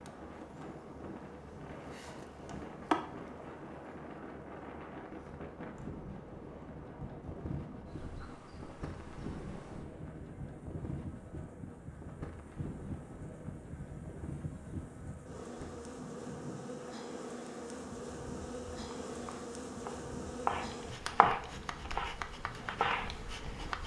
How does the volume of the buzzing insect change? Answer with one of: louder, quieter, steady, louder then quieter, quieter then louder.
quieter then louder.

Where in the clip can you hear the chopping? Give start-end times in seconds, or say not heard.
19.1-23.8.